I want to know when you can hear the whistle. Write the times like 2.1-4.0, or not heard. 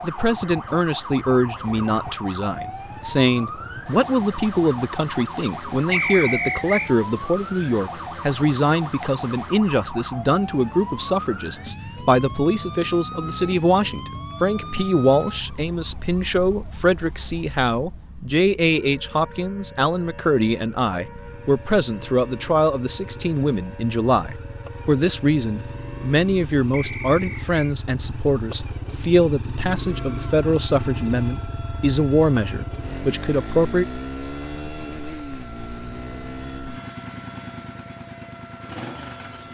5.9-6.9, 26.7-27.5.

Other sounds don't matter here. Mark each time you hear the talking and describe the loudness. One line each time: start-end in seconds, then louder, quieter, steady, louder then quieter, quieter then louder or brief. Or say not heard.
0.0-33.9 steady.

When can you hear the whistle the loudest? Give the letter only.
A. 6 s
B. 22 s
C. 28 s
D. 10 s
A.